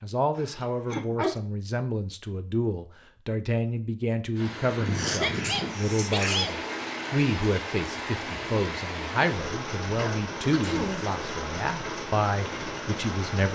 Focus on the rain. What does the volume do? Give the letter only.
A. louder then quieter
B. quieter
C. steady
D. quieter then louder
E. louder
C.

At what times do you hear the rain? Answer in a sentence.
You can hear the rain from 4.3 to 13.4 s.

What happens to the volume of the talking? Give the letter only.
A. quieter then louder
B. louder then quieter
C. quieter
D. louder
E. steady
E.